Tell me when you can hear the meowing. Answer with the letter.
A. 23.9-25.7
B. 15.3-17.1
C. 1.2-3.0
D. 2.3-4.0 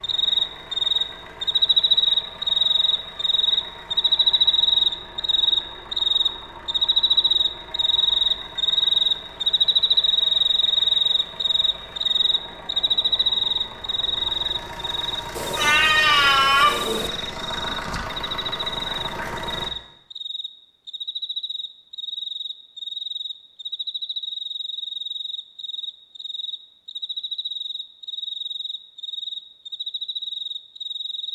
B.